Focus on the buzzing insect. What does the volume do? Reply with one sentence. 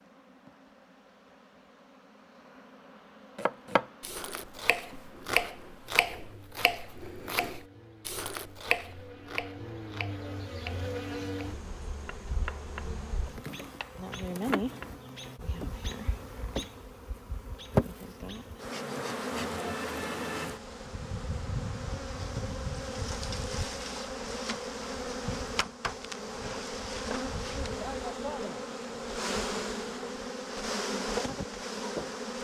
The volume of the buzzing insect goes up.